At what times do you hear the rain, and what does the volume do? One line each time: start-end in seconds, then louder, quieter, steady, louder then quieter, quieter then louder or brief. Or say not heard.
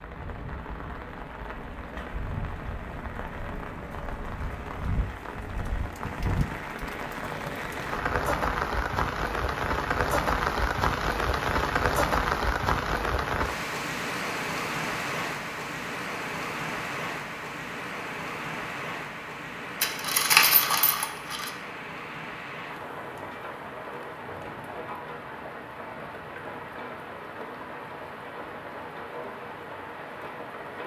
0.0-30.8 louder then quieter.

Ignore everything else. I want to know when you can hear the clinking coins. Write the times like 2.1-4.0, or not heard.
19.8-21.5.